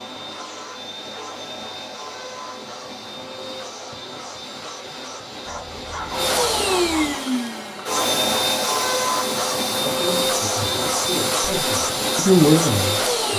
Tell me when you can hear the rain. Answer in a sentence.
The rain can't be heard in this clip.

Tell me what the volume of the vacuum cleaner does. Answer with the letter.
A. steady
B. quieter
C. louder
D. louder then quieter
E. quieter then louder
C.